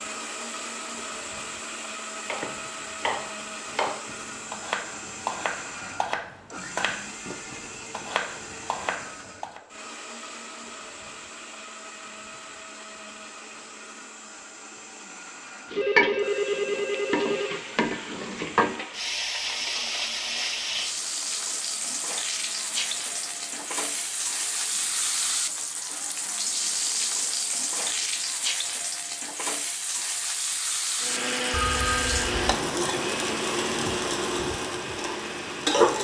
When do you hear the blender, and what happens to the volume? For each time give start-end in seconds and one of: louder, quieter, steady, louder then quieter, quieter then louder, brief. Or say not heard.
0.0-28.3 quieter
30.9-35.9 quieter.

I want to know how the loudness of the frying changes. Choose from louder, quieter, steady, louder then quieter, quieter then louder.
steady.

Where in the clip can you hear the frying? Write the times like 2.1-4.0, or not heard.
15.7-35.9.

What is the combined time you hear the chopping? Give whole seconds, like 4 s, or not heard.
7 s.